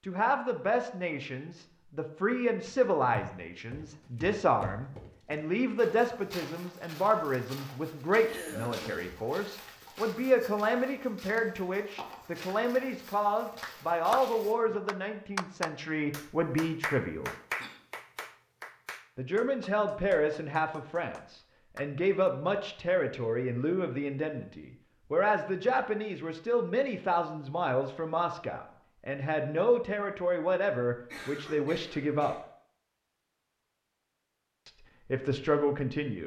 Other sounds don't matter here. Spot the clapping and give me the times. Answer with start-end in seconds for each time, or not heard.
13.6-22.4.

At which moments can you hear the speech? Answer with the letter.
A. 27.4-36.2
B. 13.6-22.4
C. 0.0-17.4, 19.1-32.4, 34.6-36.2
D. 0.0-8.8
C.